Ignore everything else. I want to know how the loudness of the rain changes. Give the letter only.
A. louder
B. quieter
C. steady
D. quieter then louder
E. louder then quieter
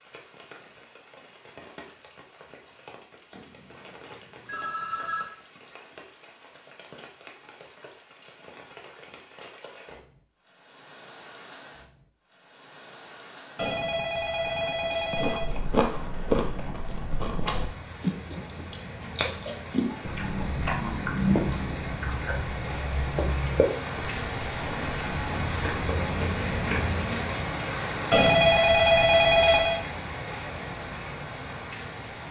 A.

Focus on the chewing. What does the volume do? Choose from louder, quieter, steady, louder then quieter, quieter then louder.
quieter.